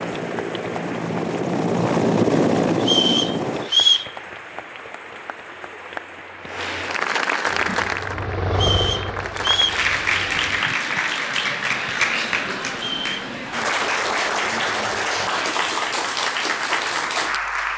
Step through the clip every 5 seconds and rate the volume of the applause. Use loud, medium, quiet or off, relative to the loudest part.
quiet, loud, loud, loud.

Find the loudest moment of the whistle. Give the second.
4 s.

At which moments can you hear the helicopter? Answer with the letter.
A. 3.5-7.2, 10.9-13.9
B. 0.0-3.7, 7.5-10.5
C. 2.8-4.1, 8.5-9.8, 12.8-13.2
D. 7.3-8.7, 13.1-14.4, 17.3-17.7
B.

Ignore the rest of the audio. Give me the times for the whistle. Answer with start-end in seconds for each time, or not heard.
2.8-4.1, 8.5-9.8, 12.8-13.2.